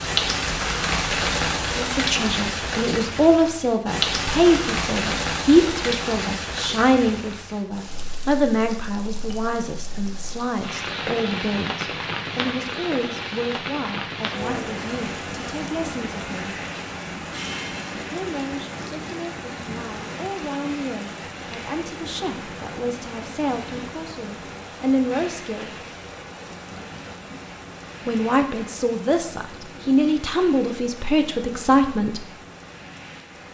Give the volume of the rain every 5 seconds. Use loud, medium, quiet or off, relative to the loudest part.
loud, medium, medium, medium, medium, quiet, quiet.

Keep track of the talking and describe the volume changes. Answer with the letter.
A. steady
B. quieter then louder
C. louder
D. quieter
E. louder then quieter
B.